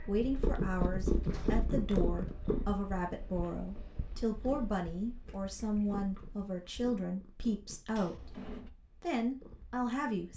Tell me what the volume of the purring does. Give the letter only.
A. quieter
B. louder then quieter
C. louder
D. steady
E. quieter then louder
A.